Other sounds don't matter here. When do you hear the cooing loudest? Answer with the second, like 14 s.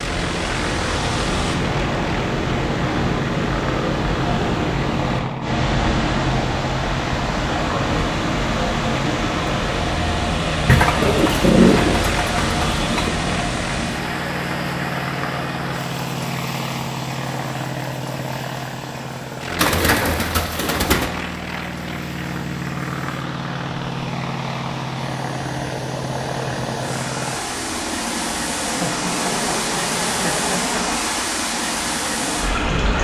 12 s.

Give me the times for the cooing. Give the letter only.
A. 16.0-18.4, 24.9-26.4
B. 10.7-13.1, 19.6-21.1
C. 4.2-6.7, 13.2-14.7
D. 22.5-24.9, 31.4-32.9
B.